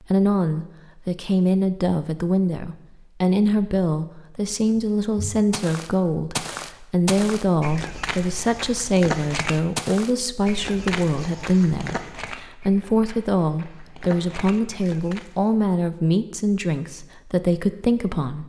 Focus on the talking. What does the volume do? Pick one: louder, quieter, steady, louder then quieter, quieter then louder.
steady.